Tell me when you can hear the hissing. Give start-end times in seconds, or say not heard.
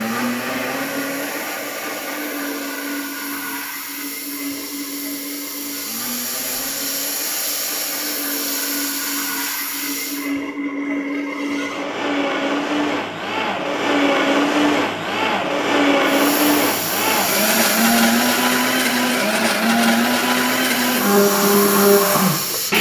0.0-10.3, 16.0-22.7.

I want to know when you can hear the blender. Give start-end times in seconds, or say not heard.
0.0-22.7.